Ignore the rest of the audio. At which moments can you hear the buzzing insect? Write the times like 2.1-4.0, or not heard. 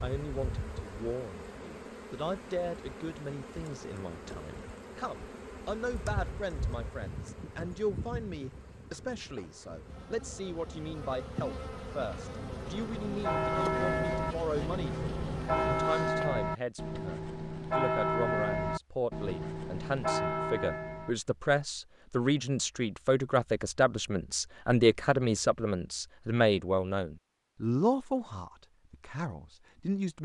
0.0-16.3.